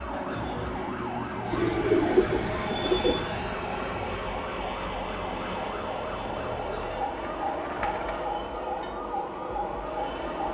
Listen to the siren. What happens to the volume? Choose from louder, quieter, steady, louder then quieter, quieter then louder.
steady.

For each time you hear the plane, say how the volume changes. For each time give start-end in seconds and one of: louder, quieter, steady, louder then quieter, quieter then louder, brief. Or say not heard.
0.0-10.4 steady.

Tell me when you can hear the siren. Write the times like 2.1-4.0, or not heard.
0.0-10.4.